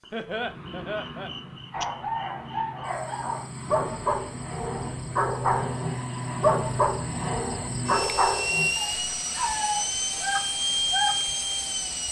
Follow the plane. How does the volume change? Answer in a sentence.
The loudness of the plane goes up.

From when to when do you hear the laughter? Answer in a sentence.
The laughter can be heard from 0.1 to 1.3 s.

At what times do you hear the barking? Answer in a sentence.
The barking can be heard from 1.7 to 11.2 s.